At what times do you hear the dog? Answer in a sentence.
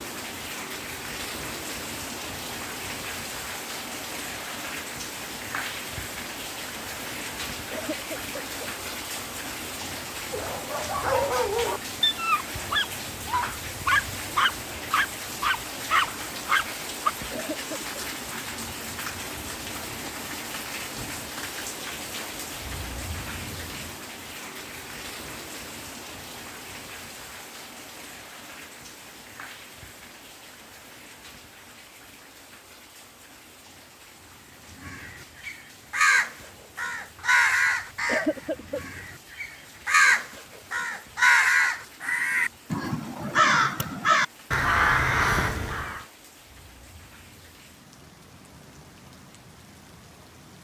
The dog can be heard from 10.3 to 17.1 s.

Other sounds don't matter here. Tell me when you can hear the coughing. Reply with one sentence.
You can hear the coughing from 7.7 to 8.4 s, from 17.3 to 18.0 s and from 38.0 to 38.8 s.